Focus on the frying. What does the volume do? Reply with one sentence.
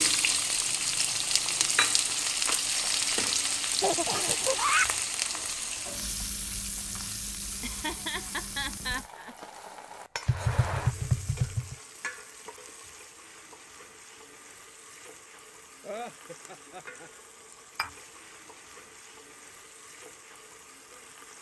The loudness of the frying goes down.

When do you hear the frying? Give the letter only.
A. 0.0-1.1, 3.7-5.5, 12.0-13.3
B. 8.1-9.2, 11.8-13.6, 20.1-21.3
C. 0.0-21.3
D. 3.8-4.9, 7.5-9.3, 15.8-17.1
C.